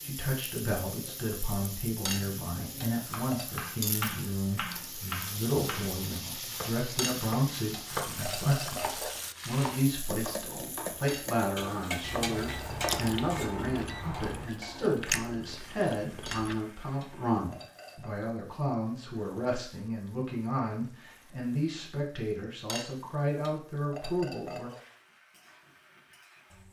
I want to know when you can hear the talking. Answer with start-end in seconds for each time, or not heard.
0.0-24.7.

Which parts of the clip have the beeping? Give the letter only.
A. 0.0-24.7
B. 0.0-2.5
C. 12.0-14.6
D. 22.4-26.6
C.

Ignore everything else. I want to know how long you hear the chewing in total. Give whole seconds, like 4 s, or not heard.
4 s.